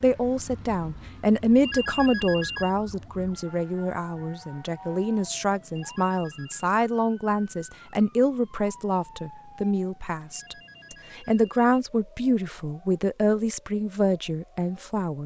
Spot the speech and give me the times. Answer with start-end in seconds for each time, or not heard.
0.0-15.2.